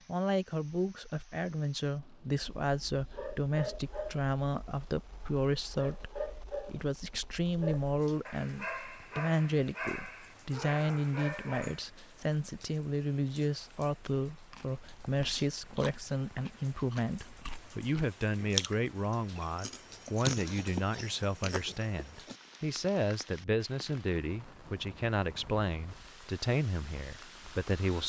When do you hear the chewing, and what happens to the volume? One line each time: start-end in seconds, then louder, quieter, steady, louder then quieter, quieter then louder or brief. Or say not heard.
14.5-22.4 louder then quieter.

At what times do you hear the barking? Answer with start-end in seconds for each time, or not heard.
2.4-11.8.